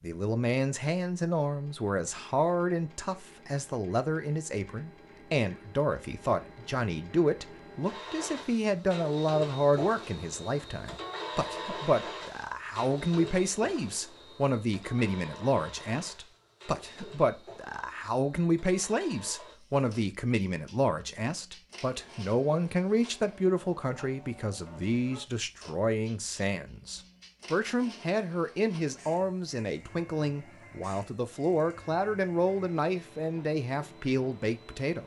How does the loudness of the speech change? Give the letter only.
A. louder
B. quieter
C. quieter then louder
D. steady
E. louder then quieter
D.